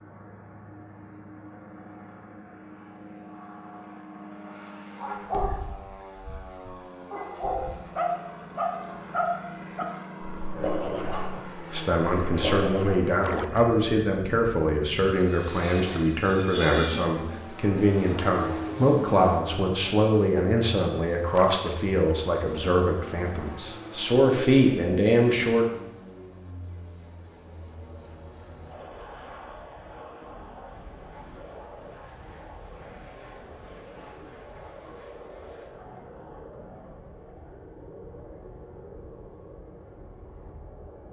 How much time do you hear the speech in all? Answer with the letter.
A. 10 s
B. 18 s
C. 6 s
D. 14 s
D.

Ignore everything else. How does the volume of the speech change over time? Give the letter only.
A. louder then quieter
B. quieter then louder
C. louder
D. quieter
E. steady
E.